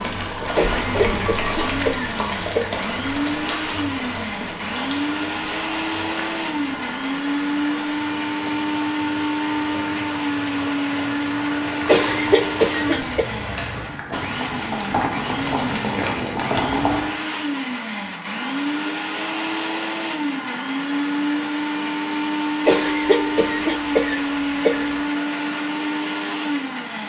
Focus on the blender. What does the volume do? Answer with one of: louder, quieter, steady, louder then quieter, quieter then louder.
steady.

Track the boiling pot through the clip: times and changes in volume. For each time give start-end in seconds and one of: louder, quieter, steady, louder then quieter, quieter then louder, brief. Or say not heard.
0.0-17.1 quieter then louder.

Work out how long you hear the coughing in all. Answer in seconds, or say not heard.
6 s.